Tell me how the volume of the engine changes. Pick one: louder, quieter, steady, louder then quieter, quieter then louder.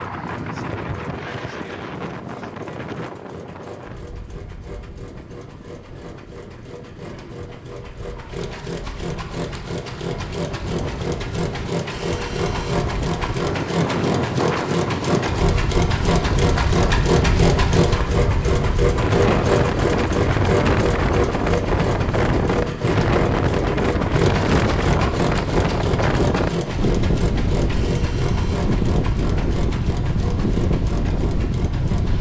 louder then quieter.